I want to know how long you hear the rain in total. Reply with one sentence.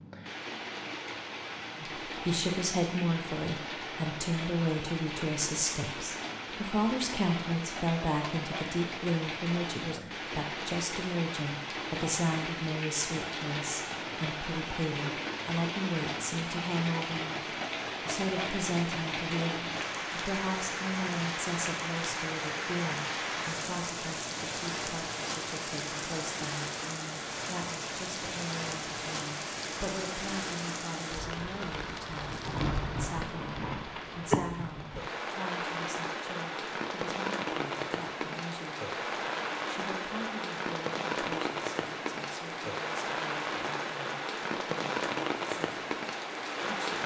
The rain can be heard for 47 seconds in total.